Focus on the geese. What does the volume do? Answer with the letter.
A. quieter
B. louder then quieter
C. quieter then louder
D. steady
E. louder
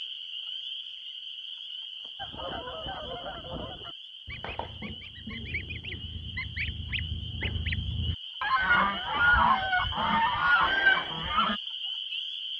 E.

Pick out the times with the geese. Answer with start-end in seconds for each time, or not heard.
2.1-11.6.